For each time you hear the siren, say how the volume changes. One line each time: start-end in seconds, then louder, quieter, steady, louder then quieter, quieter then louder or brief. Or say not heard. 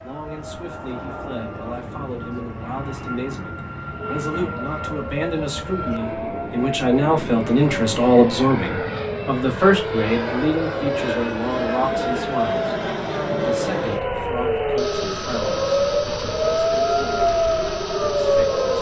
0.0-18.7 louder.